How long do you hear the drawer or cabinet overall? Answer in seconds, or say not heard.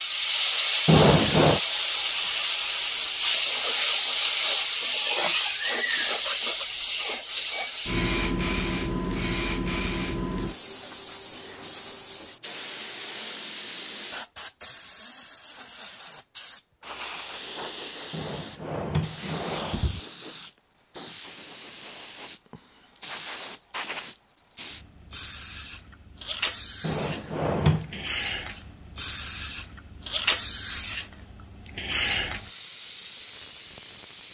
4 s.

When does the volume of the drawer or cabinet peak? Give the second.
1 s.